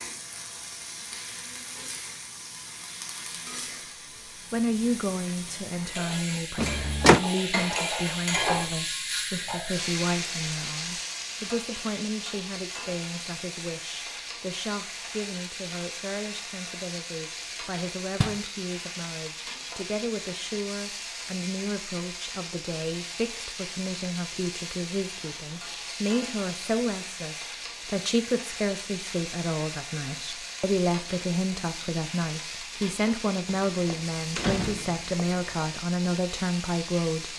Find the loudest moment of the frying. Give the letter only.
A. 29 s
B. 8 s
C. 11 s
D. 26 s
B.